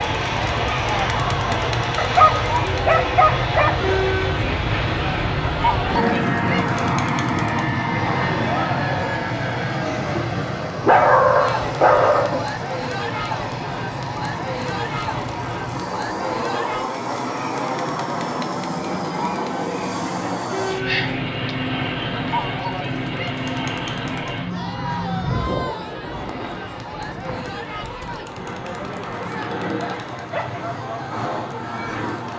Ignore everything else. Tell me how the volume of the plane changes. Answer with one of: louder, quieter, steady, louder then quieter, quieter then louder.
quieter.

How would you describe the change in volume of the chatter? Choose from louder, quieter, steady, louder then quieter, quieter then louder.
quieter.